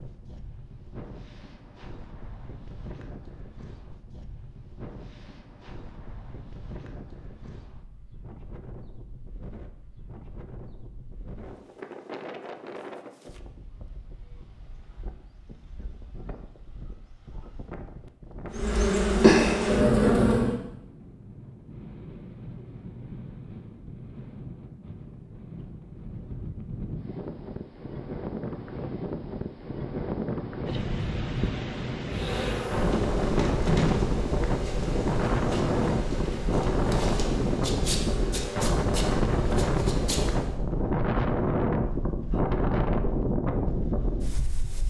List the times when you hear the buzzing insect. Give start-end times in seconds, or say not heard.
18.6-20.6, 32.1-40.5.